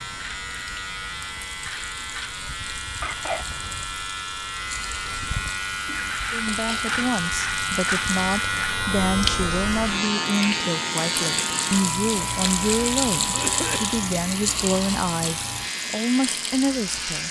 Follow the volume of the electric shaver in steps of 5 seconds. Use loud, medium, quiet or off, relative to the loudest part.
medium, loud, loud, medium.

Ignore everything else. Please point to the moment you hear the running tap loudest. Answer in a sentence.
The loudest moment of the running tap is at 13 seconds.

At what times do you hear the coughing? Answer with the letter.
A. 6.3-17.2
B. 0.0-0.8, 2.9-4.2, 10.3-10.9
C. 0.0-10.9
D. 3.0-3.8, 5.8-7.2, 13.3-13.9
D.